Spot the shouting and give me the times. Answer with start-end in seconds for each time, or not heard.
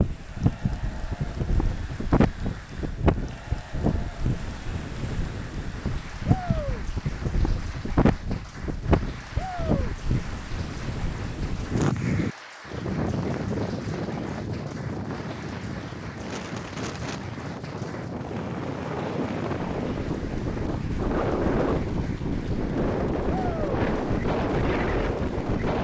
6.2-6.8, 9.3-9.9, 23.2-23.8.